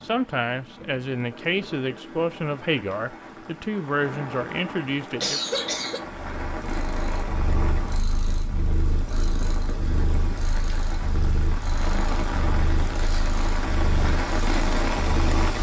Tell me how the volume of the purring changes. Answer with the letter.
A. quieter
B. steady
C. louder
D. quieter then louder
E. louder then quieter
B.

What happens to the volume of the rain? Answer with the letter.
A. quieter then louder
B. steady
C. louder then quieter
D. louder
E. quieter
D.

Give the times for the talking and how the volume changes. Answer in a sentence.
You can hear the talking from 0.0 to 5.4 s, at a steady volume.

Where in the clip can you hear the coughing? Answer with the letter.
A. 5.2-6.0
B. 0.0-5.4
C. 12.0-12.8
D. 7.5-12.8
A.